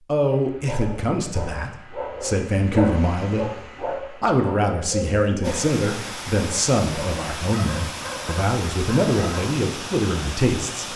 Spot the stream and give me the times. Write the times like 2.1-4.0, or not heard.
5.4-10.9.